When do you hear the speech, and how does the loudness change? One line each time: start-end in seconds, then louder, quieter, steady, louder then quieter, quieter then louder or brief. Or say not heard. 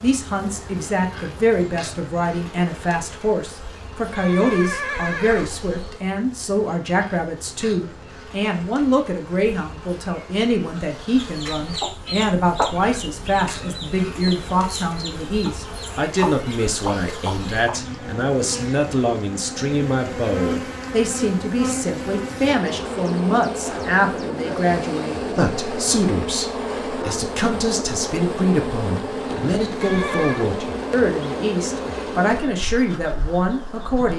0.0-34.1 steady.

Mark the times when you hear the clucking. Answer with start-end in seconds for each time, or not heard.
11.2-17.9.